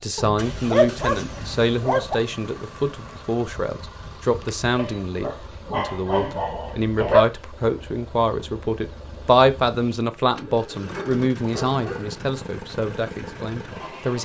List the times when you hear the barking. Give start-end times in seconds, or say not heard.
0.1-2.1, 4.8-7.2, 10.9-12.2.